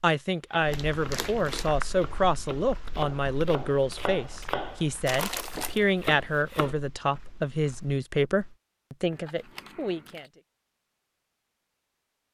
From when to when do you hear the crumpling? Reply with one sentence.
You can hear the crumpling from 0.7 to 1.7 s, from 5.0 to 5.8 s and from 9.1 to 10.3 s.